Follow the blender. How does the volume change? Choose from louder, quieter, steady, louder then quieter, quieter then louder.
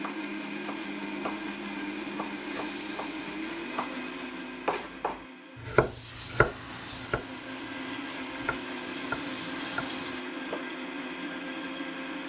quieter then louder.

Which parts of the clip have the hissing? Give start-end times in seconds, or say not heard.
0.0-4.1, 5.8-10.2.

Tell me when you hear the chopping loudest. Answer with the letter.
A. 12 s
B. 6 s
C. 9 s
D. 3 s
B.